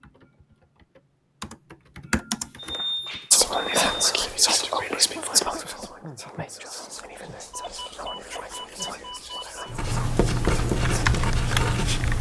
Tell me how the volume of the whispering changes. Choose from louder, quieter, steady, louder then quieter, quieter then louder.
quieter.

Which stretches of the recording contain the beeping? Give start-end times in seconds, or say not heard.
2.5-4.2, 7.0-9.8.